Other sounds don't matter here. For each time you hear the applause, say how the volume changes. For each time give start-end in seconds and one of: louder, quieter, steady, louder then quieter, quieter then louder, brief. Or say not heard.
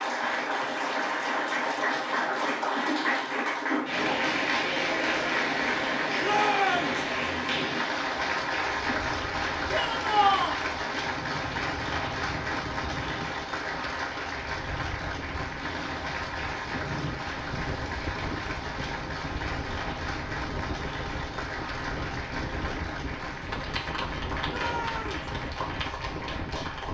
0.0-26.9 quieter.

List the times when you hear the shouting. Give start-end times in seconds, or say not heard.
6.2-7.0, 9.7-10.6, 24.4-25.3.